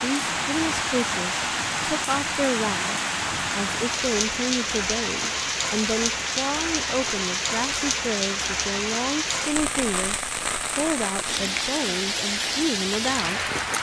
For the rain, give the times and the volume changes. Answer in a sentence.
You can hear the rain from 0.0 to 13.7 s, at a steady volume.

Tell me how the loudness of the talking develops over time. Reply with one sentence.
The volume of the talking stays about the same.